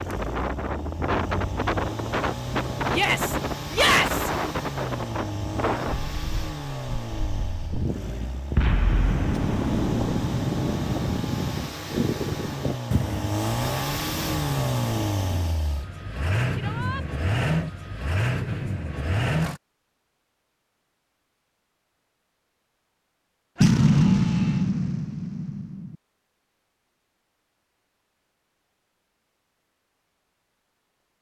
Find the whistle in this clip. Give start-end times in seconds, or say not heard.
not heard.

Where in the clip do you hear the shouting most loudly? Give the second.
4 s.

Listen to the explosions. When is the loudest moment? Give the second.
24 s.